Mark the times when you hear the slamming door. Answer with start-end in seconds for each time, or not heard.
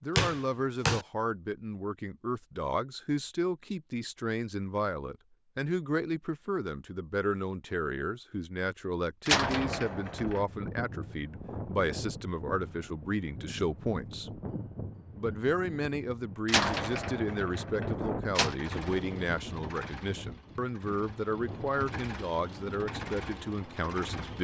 0.1-1.1, 9.2-10.4, 16.4-18.6.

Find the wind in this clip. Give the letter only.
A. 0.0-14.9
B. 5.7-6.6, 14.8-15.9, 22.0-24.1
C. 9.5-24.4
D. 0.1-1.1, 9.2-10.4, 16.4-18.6
C.